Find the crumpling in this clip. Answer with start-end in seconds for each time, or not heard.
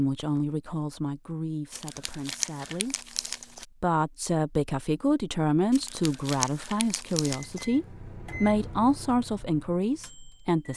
1.7-3.6, 5.7-7.7.